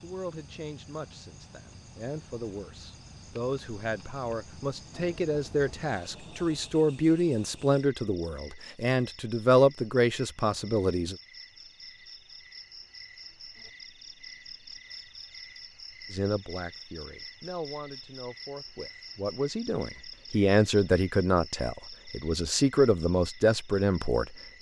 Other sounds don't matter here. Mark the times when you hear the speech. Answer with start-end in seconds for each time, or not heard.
0.0-11.2, 16.1-24.4.